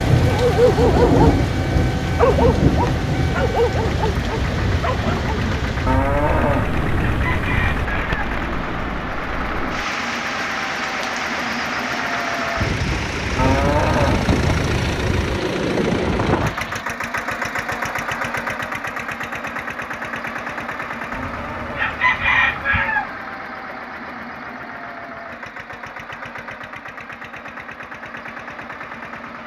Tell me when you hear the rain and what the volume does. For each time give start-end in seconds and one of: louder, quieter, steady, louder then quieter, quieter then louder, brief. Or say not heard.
0.0-16.9 quieter.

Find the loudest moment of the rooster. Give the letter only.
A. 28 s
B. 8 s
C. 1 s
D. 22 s
D.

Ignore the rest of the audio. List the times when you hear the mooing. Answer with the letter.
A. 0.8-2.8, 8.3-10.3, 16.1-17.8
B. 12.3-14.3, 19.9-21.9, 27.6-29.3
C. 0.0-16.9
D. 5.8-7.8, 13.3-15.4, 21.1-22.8
D.